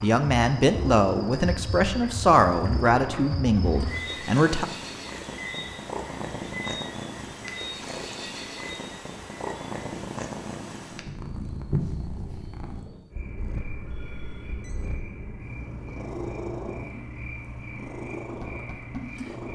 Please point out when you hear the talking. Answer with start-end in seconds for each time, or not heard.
0.0-4.7.